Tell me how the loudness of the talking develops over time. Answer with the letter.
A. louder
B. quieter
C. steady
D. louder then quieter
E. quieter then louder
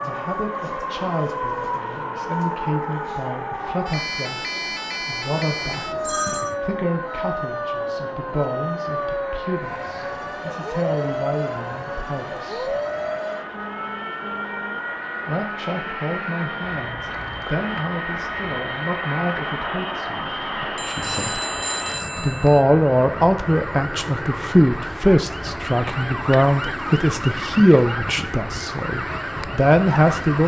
A.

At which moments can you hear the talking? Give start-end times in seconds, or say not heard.
0.0-12.8, 15.2-21.4, 22.2-30.4.